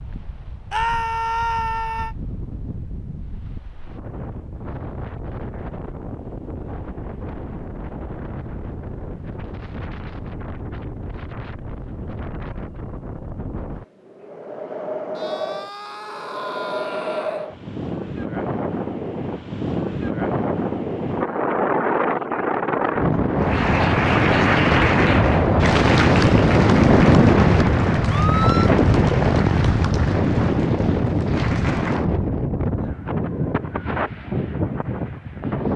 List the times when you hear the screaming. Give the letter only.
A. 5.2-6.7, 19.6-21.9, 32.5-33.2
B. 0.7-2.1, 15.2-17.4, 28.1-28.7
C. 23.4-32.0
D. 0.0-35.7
B.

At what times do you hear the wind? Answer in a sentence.
The wind can be heard from 0.0 to 35.7 s.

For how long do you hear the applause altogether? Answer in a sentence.
You can hear the applause for 9 seconds altogether.